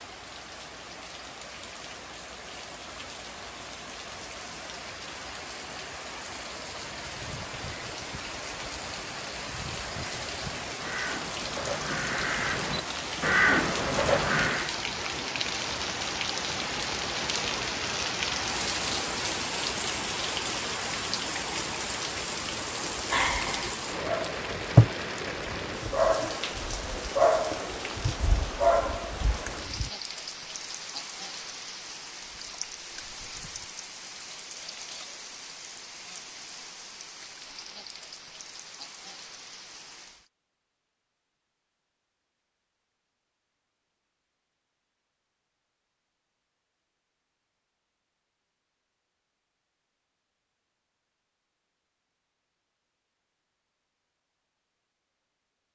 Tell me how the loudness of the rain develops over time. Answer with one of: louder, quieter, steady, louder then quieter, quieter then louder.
louder then quieter.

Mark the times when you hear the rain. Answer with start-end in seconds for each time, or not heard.
0.0-40.3.